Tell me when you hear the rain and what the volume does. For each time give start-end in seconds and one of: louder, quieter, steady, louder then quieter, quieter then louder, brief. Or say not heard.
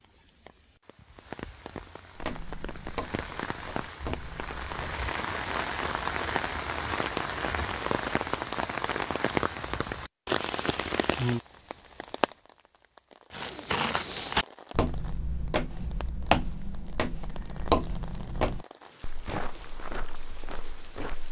0.0-21.2 louder then quieter.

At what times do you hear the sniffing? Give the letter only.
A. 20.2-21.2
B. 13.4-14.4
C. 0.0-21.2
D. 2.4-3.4
B.